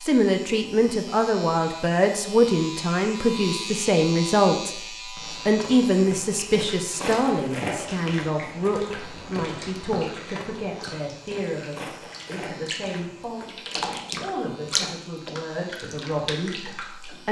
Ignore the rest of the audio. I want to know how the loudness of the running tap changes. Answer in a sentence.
The loudness of the running tap goes up, then down.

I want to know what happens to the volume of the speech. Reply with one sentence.
The volume of the speech goes down.